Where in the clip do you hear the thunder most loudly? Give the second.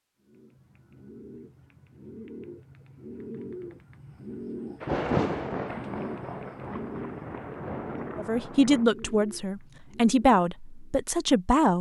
5 s.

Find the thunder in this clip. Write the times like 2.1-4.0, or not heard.
4.8-8.8.